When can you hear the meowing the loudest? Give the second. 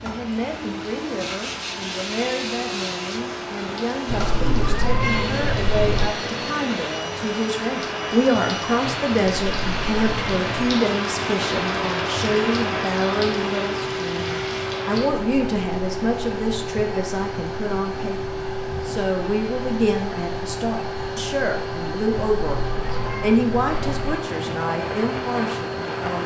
5 s.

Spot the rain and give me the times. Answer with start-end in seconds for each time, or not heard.
0.0-26.2.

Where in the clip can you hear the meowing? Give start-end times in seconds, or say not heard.
4.0-6.1, 9.2-10.5, 22.2-24.1.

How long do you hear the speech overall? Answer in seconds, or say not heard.
26 s.